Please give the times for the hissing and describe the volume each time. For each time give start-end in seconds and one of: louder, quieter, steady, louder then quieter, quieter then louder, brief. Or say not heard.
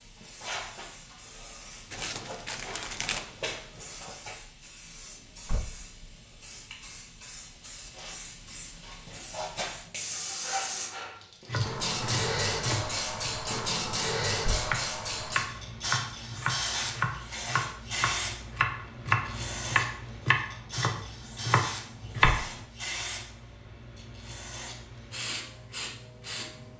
0.0-26.7 louder then quieter.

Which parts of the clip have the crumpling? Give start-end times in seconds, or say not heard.
1.9-3.4.